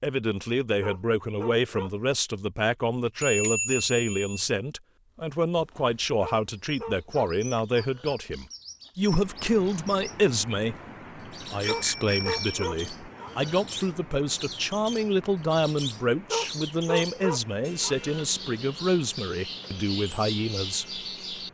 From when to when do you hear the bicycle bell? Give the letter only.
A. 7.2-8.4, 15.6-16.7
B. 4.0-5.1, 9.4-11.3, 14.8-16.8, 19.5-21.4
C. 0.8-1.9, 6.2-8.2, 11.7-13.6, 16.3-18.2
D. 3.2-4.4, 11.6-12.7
D.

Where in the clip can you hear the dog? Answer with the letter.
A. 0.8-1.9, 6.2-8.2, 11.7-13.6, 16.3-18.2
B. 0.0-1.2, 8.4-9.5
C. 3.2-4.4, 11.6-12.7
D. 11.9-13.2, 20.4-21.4
A.